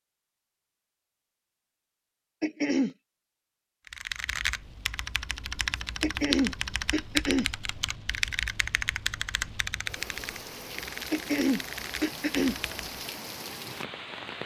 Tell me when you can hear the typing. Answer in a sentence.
The typing can be heard from 3.9 to 12.9 s.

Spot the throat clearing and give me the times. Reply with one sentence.
You can hear the throat clearing from 2.4 to 3.0 s, from 6.0 to 7.5 s and from 11.1 to 12.6 s.